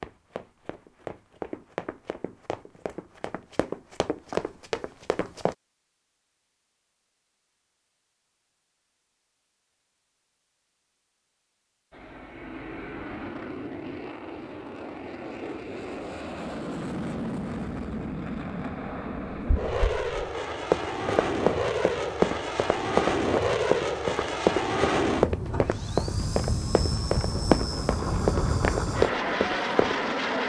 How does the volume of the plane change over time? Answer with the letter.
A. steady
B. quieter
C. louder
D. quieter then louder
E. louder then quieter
C.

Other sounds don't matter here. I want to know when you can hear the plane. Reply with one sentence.
The plane can be heard from 11.9 to 30.4 s.